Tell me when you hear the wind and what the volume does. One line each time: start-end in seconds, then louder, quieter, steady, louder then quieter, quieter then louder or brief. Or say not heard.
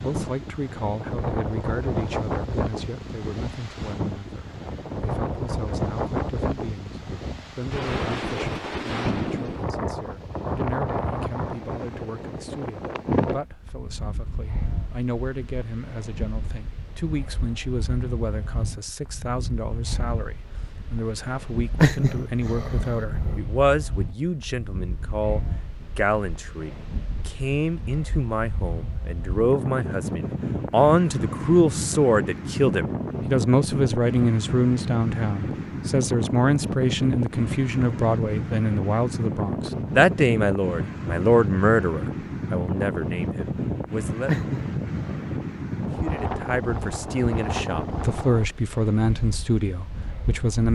0.0-50.7 quieter then louder.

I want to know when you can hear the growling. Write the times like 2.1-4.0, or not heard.
21.8-23.4, 44.2-45.3.